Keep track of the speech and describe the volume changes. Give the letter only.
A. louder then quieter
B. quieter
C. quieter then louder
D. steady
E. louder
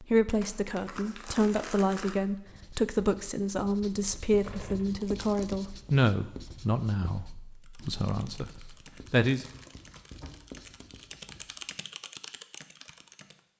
B.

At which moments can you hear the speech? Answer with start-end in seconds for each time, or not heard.
0.0-9.4.